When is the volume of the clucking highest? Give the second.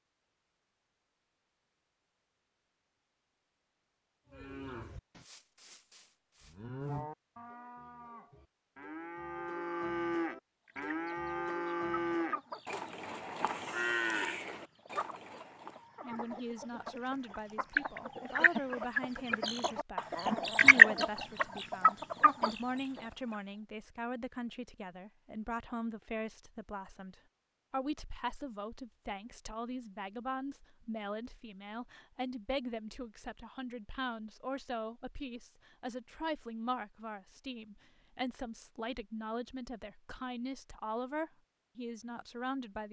21 s.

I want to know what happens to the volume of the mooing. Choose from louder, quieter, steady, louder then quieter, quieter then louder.
louder.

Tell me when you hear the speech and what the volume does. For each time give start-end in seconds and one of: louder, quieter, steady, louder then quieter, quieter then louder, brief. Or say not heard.
16.0-42.8 steady.